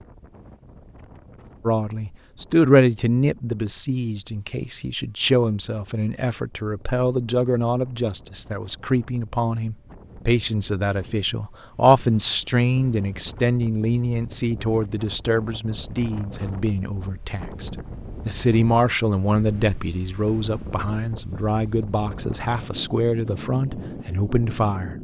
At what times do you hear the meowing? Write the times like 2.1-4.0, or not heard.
not heard.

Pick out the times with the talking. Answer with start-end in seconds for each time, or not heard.
1.6-24.9.